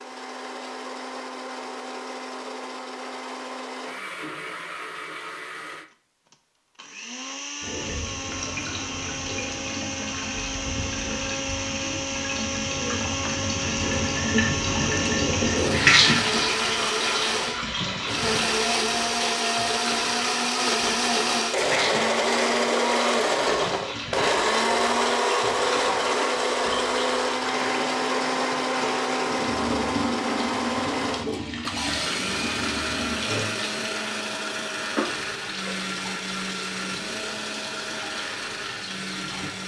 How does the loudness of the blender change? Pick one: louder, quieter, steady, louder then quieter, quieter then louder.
louder then quieter.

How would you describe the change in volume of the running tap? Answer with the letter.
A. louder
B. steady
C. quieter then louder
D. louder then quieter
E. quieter
D.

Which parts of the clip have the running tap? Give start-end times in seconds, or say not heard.
7.6-39.6.